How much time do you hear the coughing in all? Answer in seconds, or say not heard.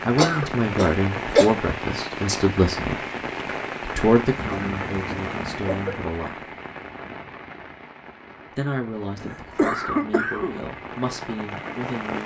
4 s.